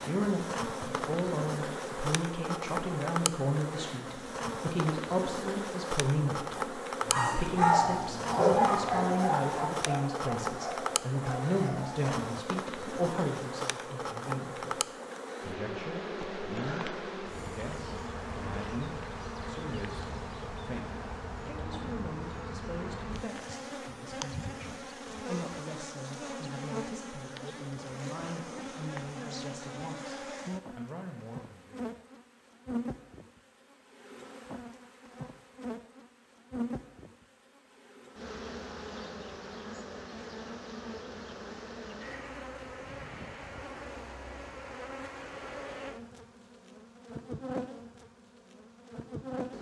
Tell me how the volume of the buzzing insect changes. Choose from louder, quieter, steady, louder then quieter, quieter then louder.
quieter.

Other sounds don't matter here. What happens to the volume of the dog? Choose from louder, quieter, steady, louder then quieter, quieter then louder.
quieter.